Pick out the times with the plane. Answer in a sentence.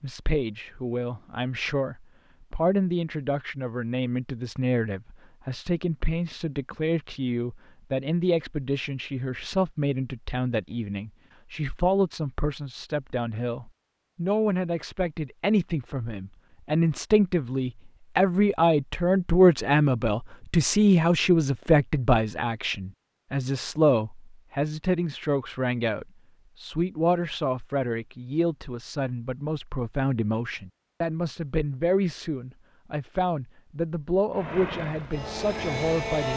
You can hear the plane from 34.4 to 36.3 s.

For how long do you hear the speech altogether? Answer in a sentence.
You can hear the speech for 36 seconds altogether.